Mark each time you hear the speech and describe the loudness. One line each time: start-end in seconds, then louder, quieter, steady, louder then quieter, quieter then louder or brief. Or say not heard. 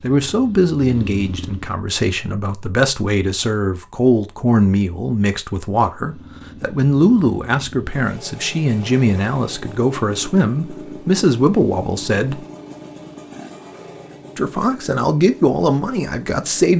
0.0-12.4 steady
14.3-16.7 brief.